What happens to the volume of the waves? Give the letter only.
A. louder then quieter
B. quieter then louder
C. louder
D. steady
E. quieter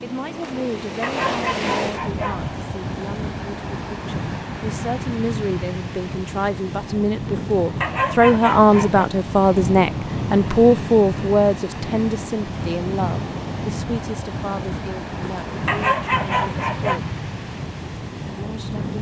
D.